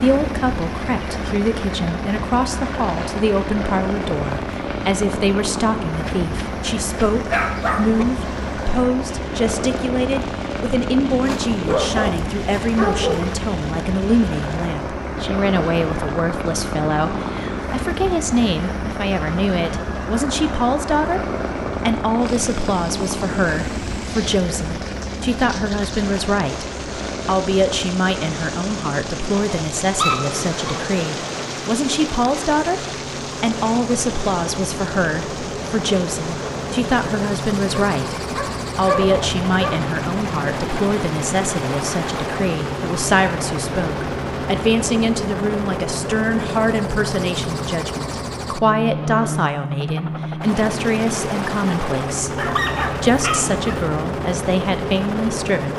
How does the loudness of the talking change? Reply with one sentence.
The loudness of the talking stays about the same.